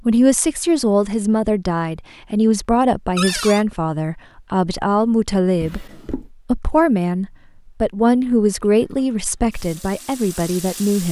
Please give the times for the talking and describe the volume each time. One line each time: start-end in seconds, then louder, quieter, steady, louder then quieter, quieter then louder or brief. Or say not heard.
0.1-11.0 steady.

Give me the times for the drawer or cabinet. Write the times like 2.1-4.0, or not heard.
3.1-3.6, 5.6-6.3.